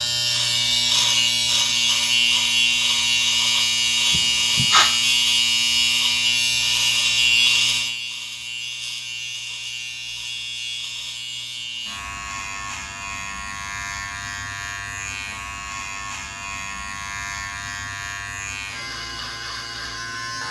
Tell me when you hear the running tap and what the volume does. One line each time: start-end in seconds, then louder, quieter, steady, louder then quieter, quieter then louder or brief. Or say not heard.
not heard.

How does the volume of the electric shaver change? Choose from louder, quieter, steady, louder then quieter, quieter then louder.
quieter.